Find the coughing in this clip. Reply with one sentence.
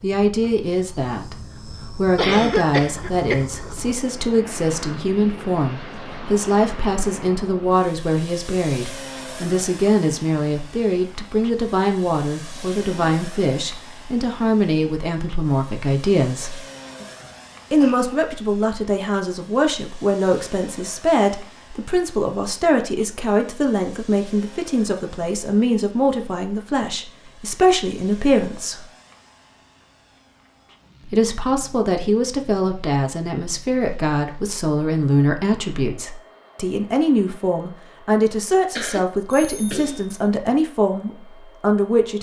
The coughing can be heard from 2.1 to 3.4 s, from 17.0 to 18.1 s and from 38.8 to 40.1 s.